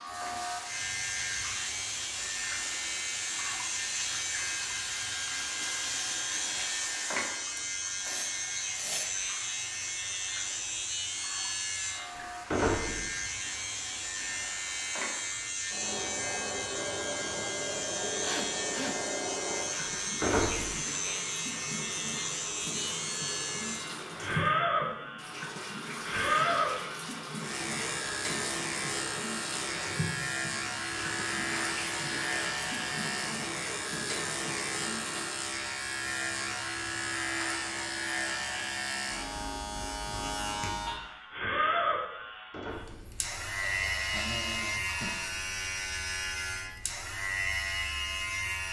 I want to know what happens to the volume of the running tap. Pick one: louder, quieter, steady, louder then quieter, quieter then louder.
quieter then louder.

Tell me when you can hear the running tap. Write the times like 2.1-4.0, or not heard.
0.0-35.5.